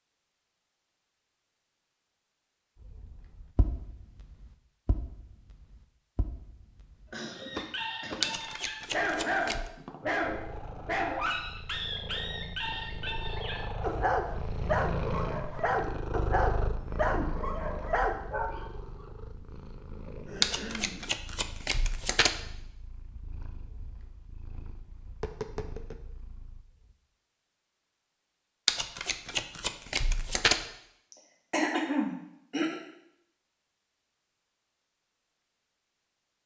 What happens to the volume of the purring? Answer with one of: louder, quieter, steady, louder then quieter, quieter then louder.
louder then quieter.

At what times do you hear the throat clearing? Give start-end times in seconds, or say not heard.
7.0-8.6, 20.2-21.1, 31.1-32.8.